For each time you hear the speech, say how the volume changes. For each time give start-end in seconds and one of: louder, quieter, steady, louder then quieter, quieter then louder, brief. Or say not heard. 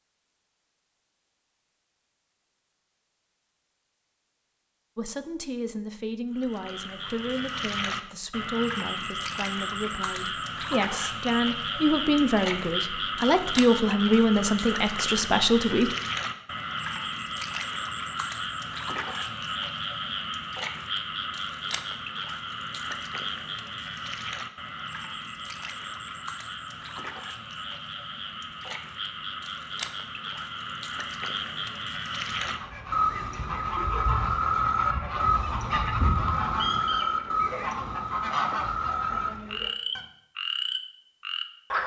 5.0-15.9 louder.